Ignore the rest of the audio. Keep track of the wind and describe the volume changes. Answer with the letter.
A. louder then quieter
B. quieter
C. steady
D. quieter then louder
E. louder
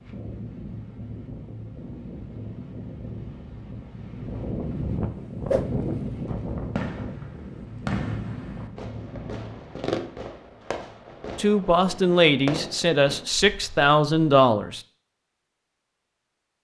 A.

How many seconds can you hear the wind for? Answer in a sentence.
You can hear the wind for 10 seconds altogether.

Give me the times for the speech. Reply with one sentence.
The speech can be heard from 11.3 to 14.8 s.